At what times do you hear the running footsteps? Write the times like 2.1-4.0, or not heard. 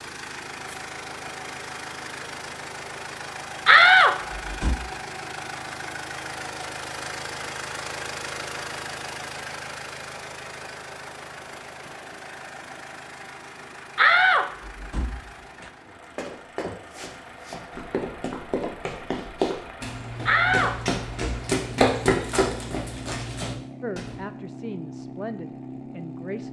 16.1-24.1.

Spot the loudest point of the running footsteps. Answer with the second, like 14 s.
22 s.